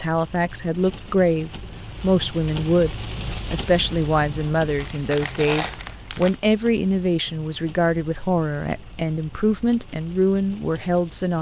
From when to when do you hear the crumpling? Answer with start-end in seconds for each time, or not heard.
4.8-6.3.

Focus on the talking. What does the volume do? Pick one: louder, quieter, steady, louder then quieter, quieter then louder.
steady.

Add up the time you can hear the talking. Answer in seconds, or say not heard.
11 s.